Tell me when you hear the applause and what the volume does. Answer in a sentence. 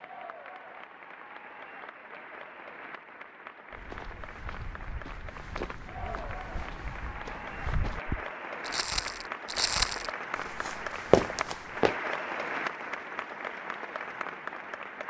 The applause can be heard from 0.0 to 15.0 s, getting louder.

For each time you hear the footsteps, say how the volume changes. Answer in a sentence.
You can hear the footsteps from 3.7 to 11.9 s, getting louder.